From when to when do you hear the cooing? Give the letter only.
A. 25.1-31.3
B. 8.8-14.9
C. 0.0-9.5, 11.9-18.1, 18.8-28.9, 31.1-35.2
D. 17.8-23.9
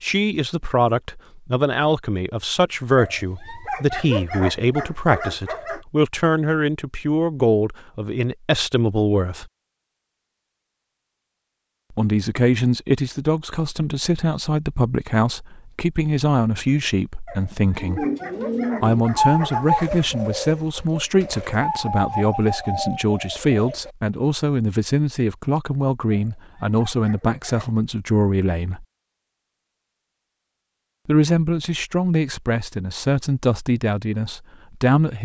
D.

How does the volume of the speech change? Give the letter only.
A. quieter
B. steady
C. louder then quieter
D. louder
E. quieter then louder
B.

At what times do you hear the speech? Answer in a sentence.
The speech can be heard from 0.0 to 9.5 s, from 11.9 to 18.1 s, from 18.8 to 28.9 s and from 31.1 to 35.2 s.